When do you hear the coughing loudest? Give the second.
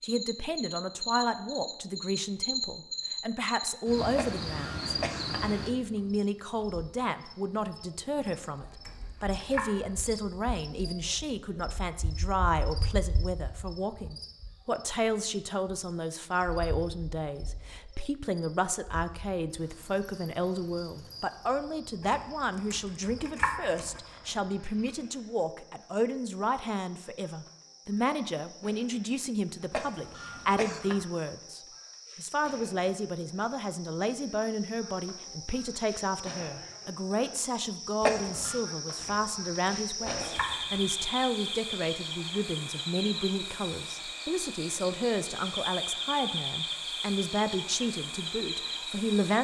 38 s.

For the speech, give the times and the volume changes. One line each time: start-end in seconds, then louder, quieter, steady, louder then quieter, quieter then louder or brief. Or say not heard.
0.0-49.3 steady.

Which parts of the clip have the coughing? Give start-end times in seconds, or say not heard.
4.2-5.5, 29.7-31.1, 38.0-38.6.